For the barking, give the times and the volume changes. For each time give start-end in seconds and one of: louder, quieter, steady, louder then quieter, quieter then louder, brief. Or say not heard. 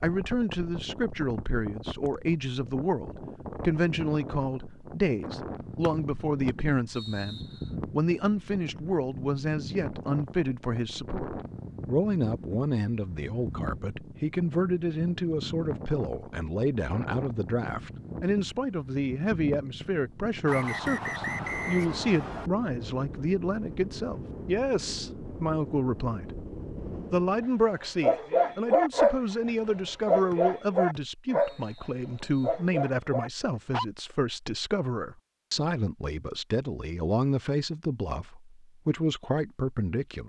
27.4-33.9 quieter.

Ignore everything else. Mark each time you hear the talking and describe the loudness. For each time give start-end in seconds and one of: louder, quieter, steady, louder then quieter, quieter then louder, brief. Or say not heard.
0.0-26.4 steady
27.1-40.2 steady.